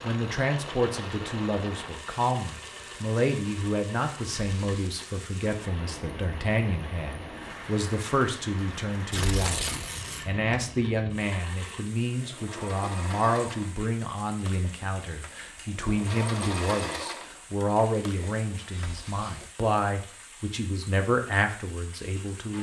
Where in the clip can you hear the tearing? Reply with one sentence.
The tearing can be heard from 4.2 to 4.8 s, from 9.1 to 10.2 s and from 18.7 to 19.4 s.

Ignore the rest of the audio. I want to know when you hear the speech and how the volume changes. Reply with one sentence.
The speech can be heard from 0.0 to 22.5 s, at a steady volume.